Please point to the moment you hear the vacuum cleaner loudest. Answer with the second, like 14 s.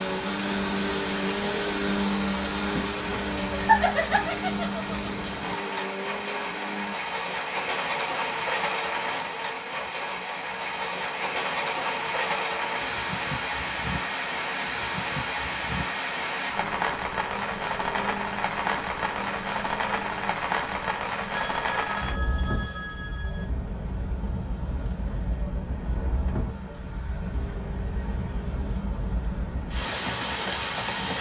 2 s.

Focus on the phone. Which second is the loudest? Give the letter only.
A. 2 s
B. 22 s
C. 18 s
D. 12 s
B.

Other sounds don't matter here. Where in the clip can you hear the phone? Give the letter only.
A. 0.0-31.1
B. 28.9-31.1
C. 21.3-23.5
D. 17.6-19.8
C.